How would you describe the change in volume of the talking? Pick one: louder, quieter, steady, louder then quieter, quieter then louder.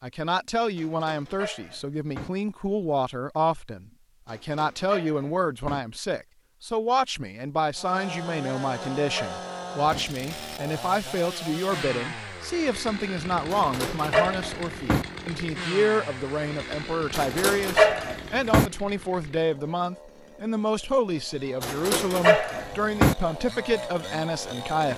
steady.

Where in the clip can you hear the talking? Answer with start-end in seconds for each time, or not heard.
0.0-24.9.